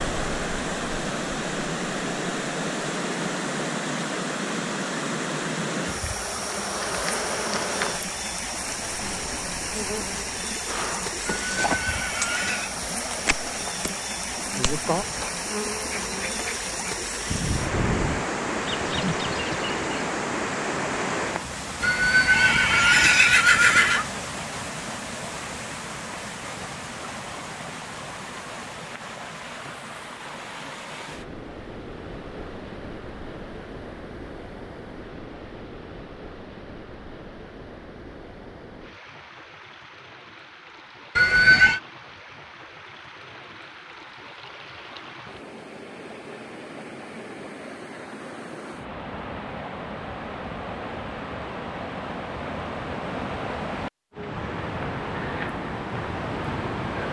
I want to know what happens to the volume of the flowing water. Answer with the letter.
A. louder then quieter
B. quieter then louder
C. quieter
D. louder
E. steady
B.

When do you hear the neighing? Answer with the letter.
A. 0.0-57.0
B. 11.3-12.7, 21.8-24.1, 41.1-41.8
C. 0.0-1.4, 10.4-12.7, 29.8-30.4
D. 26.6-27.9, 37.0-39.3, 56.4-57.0
B.